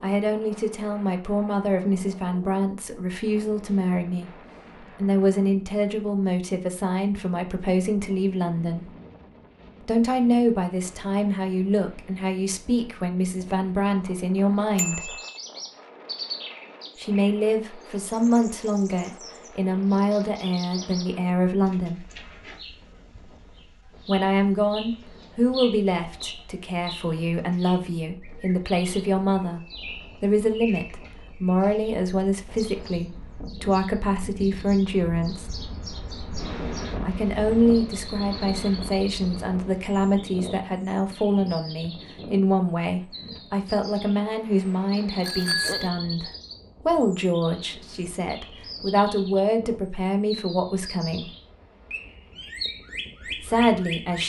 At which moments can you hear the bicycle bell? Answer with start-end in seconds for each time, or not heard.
14.8-15.4, 45.2-45.9.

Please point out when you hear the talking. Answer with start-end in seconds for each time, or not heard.
0.0-8.9, 9.8-15.2, 16.9-22.1, 24.1-35.5, 37.0-51.3, 53.4-54.2.